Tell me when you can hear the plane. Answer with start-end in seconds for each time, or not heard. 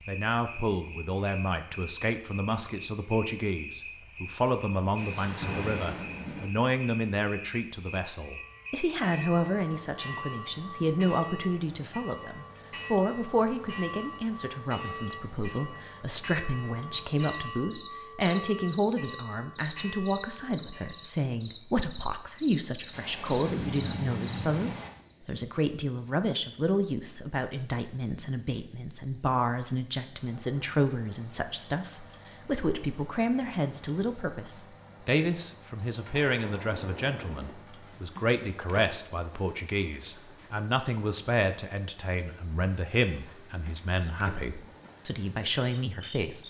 not heard.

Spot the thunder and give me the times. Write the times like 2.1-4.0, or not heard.
5.0-6.5, 22.9-24.9, 35.9-37.5.